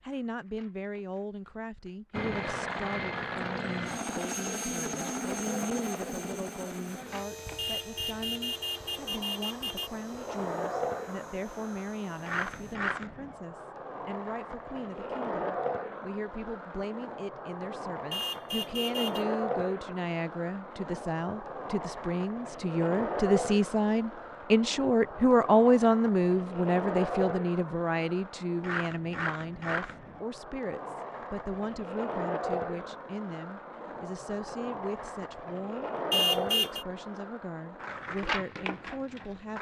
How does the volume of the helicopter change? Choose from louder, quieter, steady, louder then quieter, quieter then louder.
quieter.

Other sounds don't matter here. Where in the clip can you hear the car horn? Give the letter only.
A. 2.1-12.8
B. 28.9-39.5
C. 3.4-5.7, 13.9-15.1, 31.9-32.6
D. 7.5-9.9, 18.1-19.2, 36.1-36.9
D.